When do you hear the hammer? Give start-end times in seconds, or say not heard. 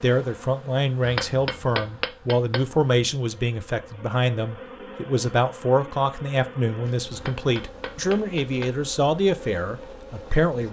1.0-2.8, 7.1-8.8.